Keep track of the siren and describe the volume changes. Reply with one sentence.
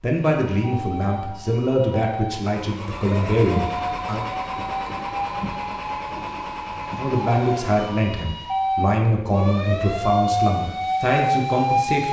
The volume of the siren goes up.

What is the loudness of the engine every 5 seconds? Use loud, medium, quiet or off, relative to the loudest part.
loud, loud, off.